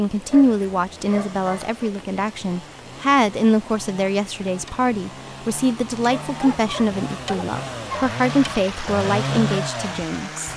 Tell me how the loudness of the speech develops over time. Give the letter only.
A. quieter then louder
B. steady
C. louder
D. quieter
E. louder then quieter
B.